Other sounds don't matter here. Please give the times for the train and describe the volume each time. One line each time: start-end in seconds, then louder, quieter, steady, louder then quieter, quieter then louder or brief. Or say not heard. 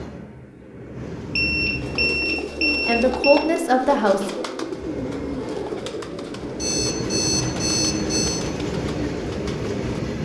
0.0-2.1 brief
4.5-10.1 louder.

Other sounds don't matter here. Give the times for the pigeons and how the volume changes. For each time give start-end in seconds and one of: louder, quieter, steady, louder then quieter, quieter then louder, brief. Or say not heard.
1.8-10.0 quieter.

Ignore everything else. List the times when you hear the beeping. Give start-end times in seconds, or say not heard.
1.4-3.5, 6.5-8.4.